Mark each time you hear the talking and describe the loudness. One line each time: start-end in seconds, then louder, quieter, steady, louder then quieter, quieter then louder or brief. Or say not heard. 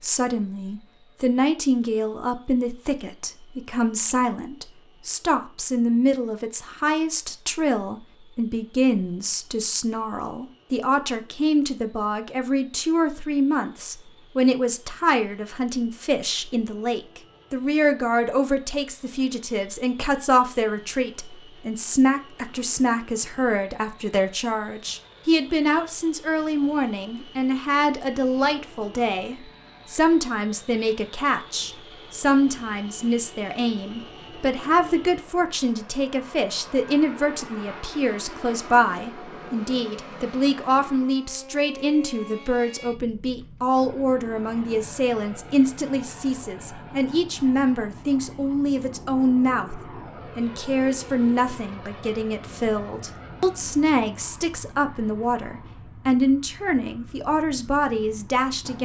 0.0-58.8 steady.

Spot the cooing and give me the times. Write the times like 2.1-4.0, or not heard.
not heard.